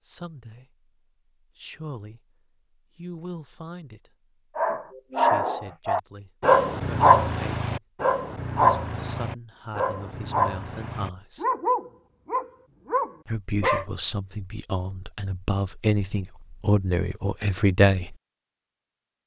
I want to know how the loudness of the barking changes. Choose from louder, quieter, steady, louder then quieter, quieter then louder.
quieter.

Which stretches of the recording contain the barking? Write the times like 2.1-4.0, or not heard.
4.5-13.8.